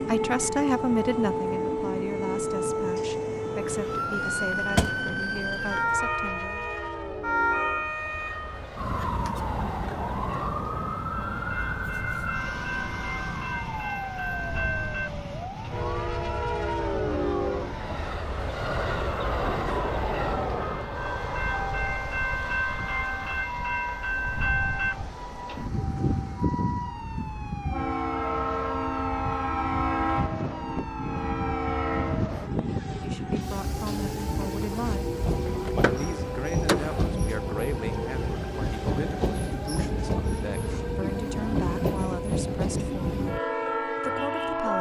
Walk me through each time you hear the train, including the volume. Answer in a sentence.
The train can be heard from 0.0 to 44.7 s, getting louder.